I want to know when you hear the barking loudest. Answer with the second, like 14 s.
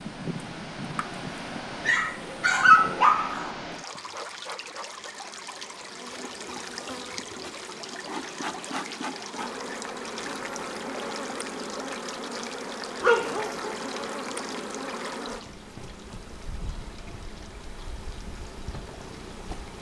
3 s.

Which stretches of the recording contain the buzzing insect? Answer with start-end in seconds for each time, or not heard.
0.0-19.7.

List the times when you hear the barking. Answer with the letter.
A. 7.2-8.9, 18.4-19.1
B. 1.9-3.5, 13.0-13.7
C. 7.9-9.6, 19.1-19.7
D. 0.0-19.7
B.